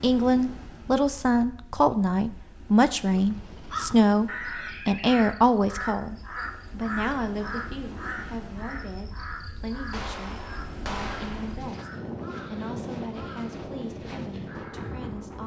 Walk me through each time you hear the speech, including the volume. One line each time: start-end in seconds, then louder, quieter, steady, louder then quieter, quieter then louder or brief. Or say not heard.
0.0-11.9 quieter
12.5-15.4 brief.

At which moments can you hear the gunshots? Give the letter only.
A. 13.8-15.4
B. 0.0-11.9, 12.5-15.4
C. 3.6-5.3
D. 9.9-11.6
D.